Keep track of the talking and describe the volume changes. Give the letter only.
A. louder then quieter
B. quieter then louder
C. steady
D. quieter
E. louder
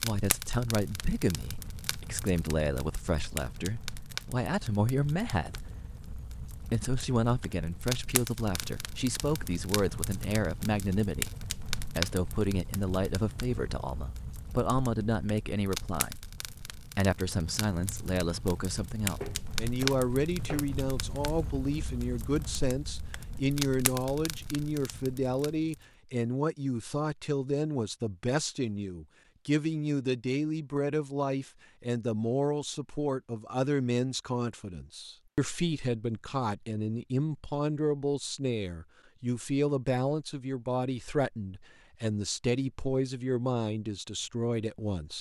C.